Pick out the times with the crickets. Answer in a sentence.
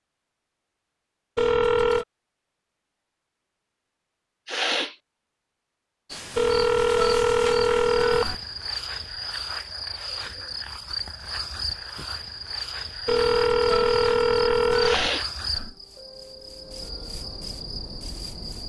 The crickets can be heard from 6.0 to 18.6 s.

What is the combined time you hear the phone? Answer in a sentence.
The phone can be heard for 5 seconds in total.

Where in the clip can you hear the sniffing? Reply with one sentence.
You can hear the sniffing from 4.5 to 5.0 s and from 14.8 to 15.2 s.